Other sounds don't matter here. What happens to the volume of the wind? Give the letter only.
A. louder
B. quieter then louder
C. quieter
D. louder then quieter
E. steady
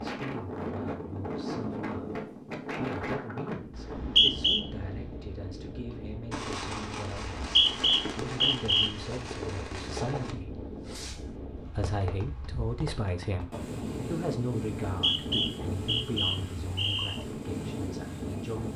B.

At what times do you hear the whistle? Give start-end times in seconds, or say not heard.
3.8-4.6, 7.4-8.9, 14.8-17.2.